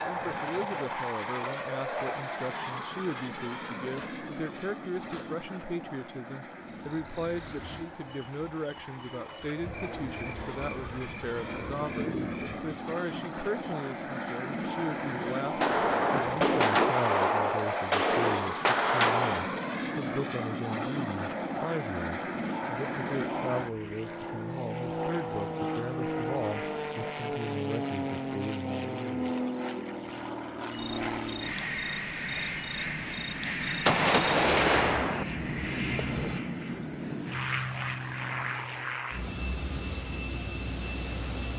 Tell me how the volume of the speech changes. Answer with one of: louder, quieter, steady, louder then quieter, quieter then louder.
steady.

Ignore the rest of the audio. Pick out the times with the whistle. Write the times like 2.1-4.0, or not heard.
not heard.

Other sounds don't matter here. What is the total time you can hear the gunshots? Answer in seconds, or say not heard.
7 s.